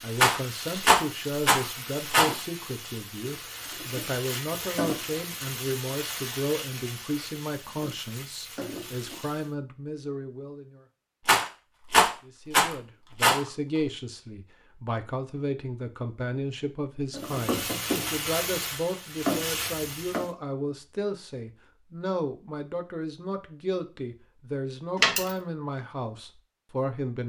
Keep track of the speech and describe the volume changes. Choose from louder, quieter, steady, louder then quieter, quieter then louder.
steady.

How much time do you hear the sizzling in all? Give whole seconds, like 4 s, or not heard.
13 s.